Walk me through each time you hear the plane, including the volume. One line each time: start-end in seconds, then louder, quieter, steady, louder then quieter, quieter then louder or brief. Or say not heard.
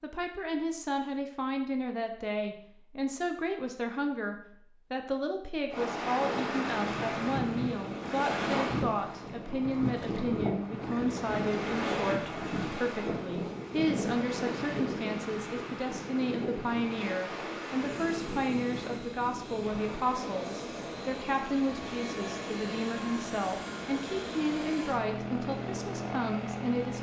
17.9-26.9 louder.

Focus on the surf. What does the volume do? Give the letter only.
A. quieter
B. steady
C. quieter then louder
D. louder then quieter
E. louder
A.